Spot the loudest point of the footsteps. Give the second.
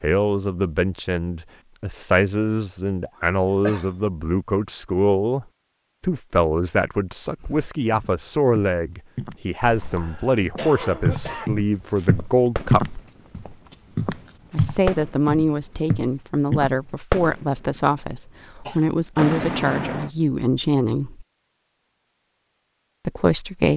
13 s.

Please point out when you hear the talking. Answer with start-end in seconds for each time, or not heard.
0.0-13.0, 14.5-21.2, 23.1-23.7.